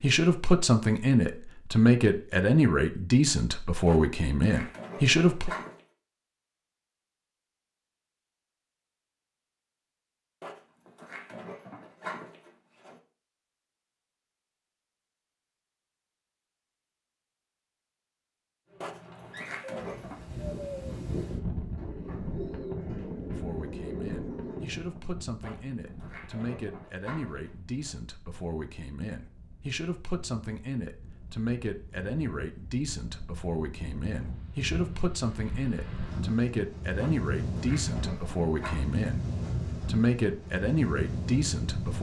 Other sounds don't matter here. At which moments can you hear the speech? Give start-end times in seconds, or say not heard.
0.0-5.5, 23.3-41.9.